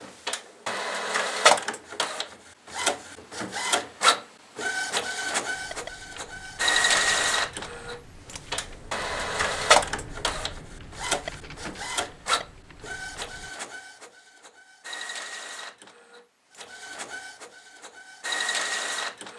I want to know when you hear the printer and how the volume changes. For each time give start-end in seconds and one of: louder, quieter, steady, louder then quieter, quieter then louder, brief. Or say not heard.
0.0-19.3 quieter.